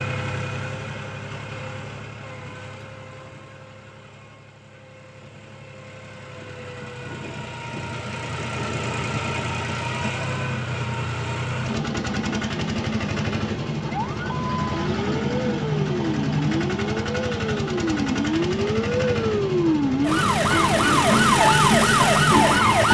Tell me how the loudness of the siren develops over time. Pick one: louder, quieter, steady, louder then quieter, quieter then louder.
louder.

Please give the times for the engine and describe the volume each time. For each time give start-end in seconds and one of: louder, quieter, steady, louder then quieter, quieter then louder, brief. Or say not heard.
0.0-22.8 louder.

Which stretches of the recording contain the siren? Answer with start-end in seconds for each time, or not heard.
13.8-22.8.